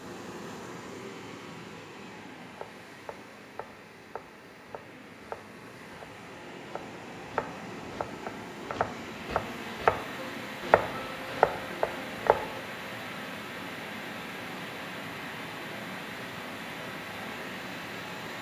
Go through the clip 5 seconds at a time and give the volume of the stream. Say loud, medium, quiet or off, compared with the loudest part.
medium, loud, loud, loud.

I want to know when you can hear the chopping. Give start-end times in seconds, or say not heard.
2.5-12.6.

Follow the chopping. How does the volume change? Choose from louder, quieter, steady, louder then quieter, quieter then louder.
louder.